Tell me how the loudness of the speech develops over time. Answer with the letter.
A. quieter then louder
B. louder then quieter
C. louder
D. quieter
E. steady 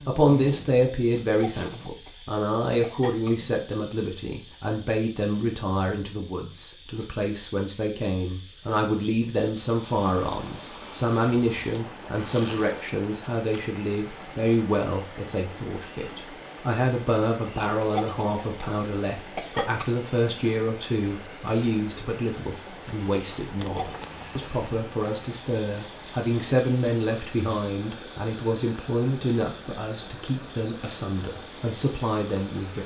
E.